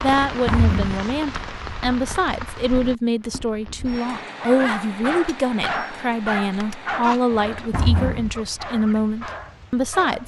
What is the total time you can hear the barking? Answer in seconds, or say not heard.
6 s.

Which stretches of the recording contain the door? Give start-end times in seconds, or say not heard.
0.2-1.0, 7.3-8.4.